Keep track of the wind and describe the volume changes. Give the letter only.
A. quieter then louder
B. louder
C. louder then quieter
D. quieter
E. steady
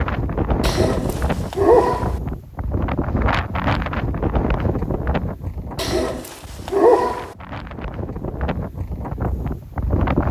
A.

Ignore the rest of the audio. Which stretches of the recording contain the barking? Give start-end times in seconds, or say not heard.
0.6-2.2, 5.8-7.3.